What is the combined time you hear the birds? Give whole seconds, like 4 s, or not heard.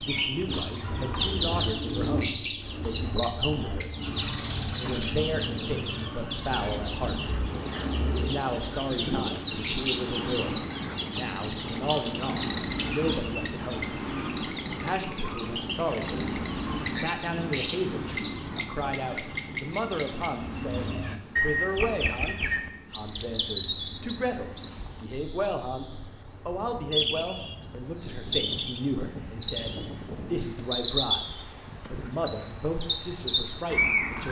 34 s.